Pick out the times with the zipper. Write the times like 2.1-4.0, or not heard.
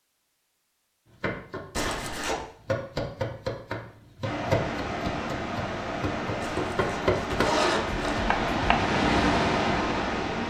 1.7-2.4, 6.4-8.2.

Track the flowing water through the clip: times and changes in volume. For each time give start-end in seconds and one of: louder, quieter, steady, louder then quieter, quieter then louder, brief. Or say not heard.
4.2-10.4 louder.